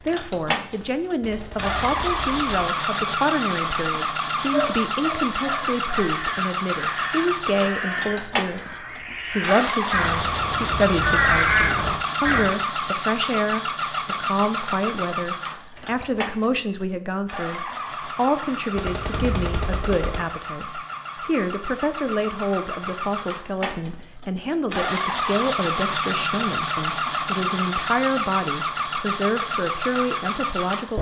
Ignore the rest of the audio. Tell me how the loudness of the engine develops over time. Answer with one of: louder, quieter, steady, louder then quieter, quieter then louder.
quieter then louder.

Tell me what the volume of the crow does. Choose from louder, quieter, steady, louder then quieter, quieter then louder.
louder.